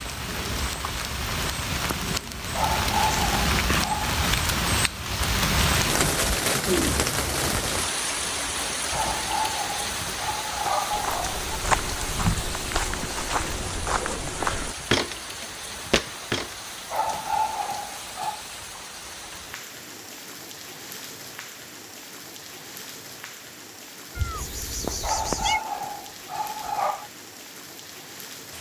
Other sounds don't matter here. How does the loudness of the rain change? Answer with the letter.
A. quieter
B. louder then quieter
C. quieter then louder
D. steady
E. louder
A.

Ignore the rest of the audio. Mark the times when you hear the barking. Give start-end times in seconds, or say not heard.
2.5-4.2, 8.9-11.4, 16.9-18.4, 25.0-27.1.